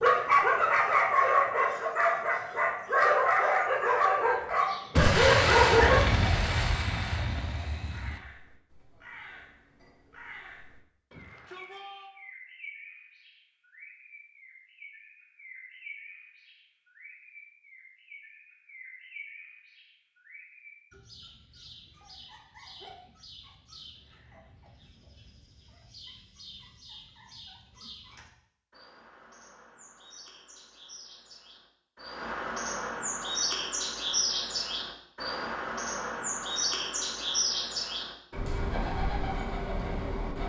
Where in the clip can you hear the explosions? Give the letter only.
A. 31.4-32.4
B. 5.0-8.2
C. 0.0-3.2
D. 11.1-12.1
B.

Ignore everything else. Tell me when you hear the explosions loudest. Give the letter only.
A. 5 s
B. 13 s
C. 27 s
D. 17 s
A.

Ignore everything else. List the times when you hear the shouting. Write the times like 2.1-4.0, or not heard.
11.1-12.1.